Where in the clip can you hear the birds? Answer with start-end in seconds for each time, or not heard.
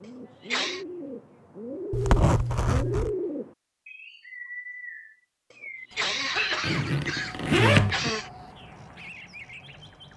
0.0-10.1.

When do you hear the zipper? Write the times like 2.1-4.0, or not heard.
1.9-3.1, 6.6-8.1.